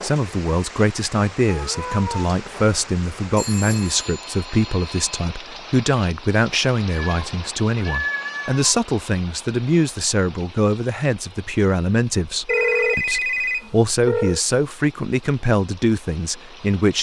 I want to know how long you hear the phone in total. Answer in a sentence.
You can hear the phone for 4 seconds altogether.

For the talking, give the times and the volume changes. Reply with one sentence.
The talking can be heard from 0.0 to 16.9 s, at a steady volume.